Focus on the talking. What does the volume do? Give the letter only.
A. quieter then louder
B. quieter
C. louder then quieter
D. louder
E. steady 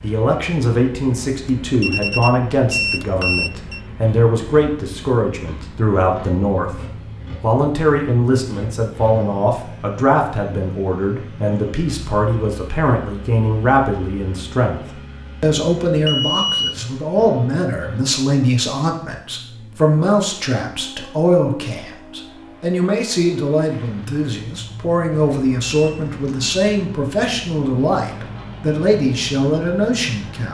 E.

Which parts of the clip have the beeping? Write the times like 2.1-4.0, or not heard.
1.4-3.8, 16.1-16.8, 25.1-26.8.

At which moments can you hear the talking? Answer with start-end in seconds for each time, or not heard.
0.0-30.4.